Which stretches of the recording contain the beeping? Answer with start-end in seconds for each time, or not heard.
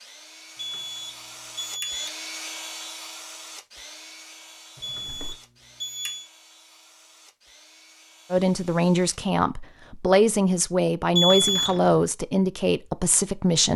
0.6-2.1, 4.8-6.2, 11.2-11.8.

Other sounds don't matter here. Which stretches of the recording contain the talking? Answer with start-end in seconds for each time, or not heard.
8.3-13.7.